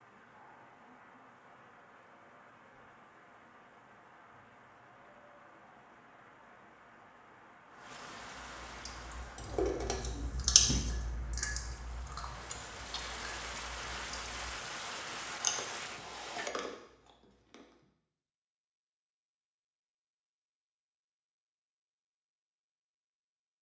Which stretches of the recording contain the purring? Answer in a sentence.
You can't hear the purring here.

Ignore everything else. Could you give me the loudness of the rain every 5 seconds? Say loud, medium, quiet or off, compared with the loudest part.
quiet, medium, loud, loud, off.